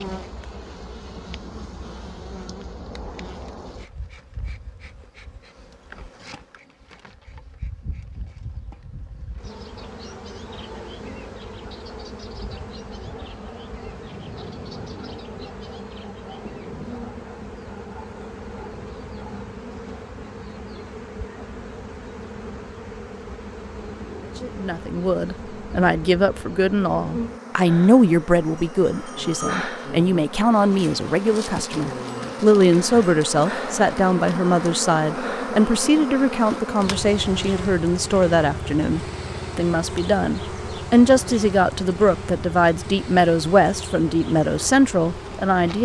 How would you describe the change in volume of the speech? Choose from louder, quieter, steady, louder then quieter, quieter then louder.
steady.